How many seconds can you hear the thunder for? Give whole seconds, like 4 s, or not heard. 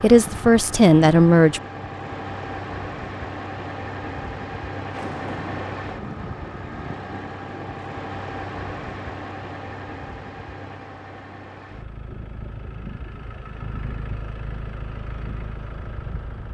3 s.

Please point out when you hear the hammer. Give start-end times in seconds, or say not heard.
not heard.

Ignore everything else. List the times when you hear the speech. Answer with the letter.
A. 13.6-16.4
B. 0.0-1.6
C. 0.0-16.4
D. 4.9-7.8
B.